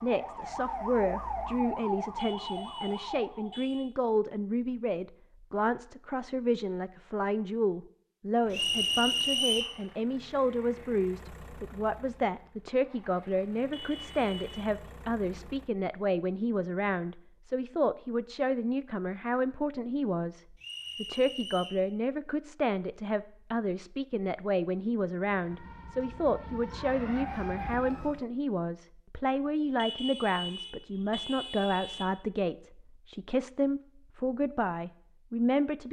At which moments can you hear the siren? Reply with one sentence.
You can hear the siren from 0.0 to 3.6 s and from 25.2 to 28.2 s.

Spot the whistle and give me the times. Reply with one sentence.
The whistle can be heard from 8.5 to 9.8 s and from 20.6 to 21.8 s.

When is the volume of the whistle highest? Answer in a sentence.
The volume of the whistle peaks at 9 seconds.